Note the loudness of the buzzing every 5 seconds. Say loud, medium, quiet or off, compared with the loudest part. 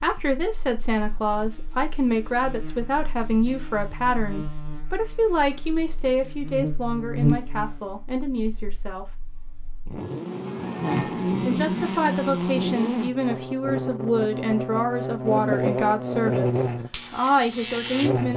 quiet, medium, loud, loud.